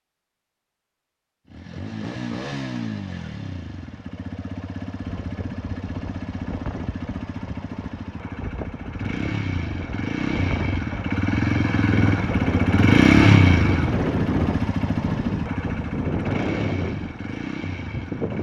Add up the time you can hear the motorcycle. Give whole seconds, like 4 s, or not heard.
17 s.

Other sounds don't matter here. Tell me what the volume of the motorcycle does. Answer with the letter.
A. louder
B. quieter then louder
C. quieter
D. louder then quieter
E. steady
D.